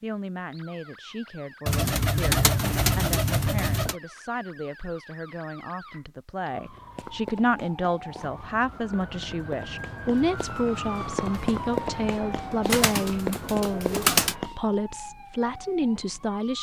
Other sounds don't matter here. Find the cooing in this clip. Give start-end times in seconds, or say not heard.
1.6-4.0, 12.7-14.3.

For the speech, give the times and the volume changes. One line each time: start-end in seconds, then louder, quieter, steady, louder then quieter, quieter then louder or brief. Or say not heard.
0.0-16.5 louder.